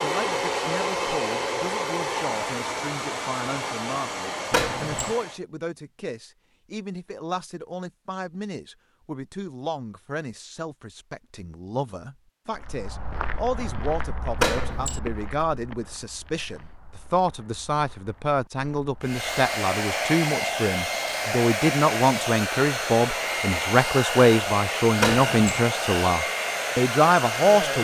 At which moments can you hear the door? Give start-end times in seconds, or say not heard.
4.5-5.2, 14.3-15.0, 25.0-25.6.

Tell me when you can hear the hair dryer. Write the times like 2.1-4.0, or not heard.
0.0-5.4, 19.0-27.7.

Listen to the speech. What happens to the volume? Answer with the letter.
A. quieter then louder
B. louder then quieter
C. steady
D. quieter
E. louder
E.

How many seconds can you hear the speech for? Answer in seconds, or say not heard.
28 s.